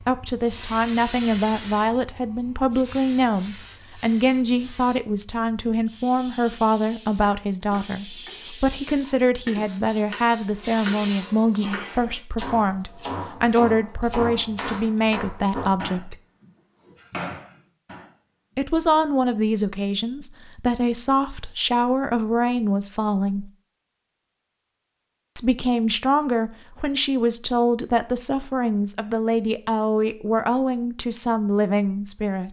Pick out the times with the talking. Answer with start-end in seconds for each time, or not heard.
0.1-16.1, 18.6-23.5, 25.4-32.4.